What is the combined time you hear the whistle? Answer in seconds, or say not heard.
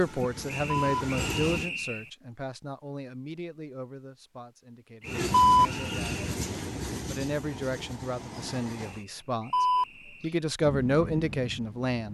5 s.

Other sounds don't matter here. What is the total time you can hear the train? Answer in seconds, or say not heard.
7 s.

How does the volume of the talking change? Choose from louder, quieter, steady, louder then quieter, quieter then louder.
quieter then louder.